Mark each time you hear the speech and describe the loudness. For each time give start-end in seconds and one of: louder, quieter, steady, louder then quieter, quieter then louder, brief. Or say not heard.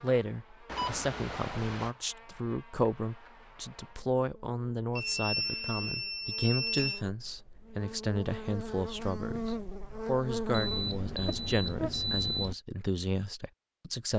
0.0-14.1 steady.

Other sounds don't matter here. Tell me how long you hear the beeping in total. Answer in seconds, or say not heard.
5 s.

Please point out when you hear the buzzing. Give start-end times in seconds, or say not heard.
0.0-11.9.